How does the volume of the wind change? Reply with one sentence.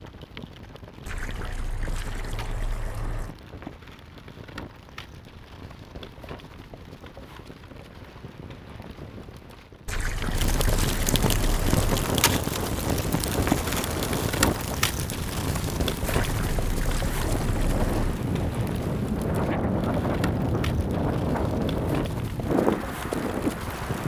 The loudness of the wind goes up.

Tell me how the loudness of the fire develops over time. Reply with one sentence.
The volume of the fire goes up, then down.